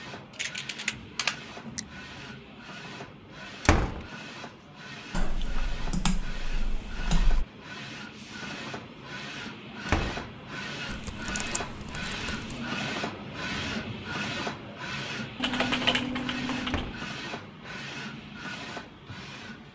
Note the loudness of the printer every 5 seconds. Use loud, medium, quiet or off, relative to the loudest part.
medium, medium, loud, loud.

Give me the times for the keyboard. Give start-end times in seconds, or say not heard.
0.3-1.8, 5.1-7.5, 10.8-12.6, 15.3-16.9.